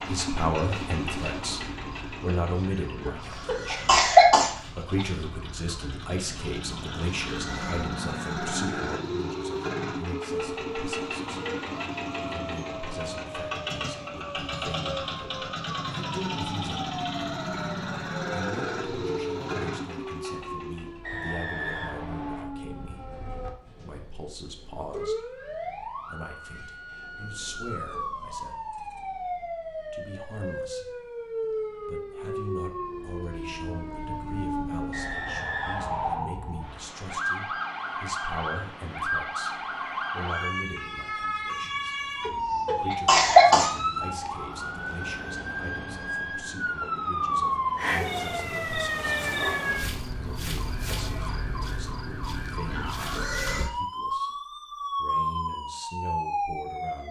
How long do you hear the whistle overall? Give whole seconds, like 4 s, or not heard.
3 s.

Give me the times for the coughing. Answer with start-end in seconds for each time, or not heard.
3.0-5.0, 42.2-43.7.